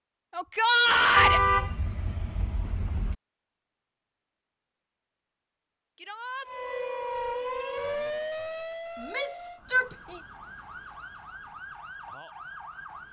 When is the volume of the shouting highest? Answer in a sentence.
The volume of the shouting peaks at 1 second.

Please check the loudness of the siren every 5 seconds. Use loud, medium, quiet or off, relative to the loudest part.
off, loud, medium.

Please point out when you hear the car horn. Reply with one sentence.
The car horn can be heard from 1.1 to 3.1 s.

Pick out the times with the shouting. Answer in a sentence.
You can hear the shouting from 0.3 to 1.4 s, from 6.0 to 6.5 s and from 9.0 to 10.2 s.